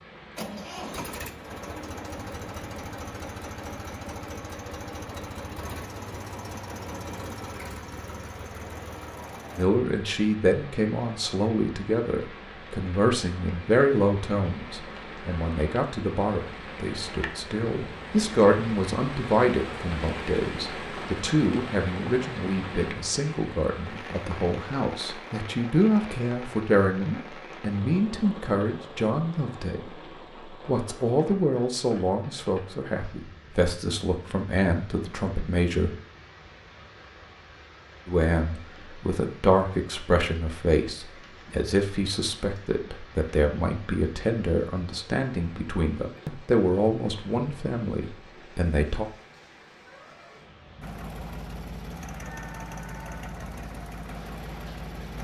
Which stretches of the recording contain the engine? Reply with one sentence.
You can hear the engine from 0.1 to 9.7 s and from 50.8 to 55.1 s.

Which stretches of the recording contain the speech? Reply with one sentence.
The speech can be heard from 9.6 to 36.0 s and from 38.0 to 49.0 s.